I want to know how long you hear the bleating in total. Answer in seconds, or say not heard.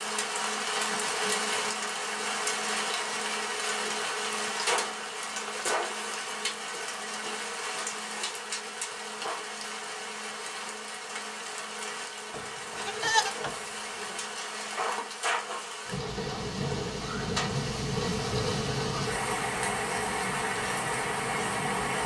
2 s.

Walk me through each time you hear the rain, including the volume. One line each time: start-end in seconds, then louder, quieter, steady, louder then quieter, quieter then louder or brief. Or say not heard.
0.0-22.0 quieter then louder.